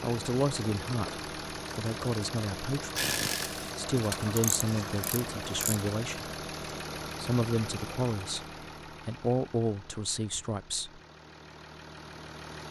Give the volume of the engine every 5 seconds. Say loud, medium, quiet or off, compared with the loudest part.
loud, loud, medium.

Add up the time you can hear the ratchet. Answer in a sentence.
The ratchet can be heard for 3 seconds in total.